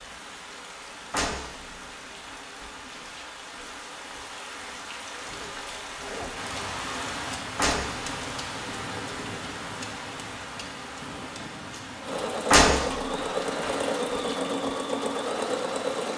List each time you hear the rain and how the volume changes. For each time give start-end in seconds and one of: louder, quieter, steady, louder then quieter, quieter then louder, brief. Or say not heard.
0.0-15.9 louder then quieter.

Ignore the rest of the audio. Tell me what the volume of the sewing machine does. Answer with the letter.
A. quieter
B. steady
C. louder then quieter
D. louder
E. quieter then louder
B.